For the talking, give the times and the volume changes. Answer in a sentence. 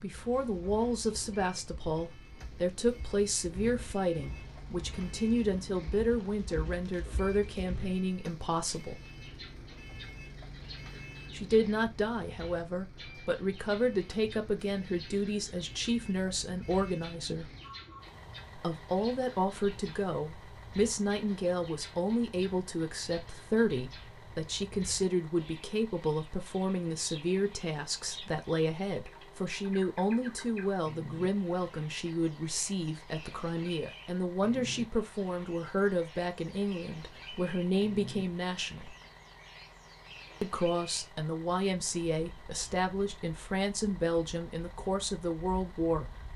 You can hear the talking from 0.0 to 9.0 s, at a steady volume; from 11.3 to 17.5 s, at a steady volume; from 18.6 to 39.0 s, at a steady volume; and from 40.4 to 46.3 s, at a steady volume.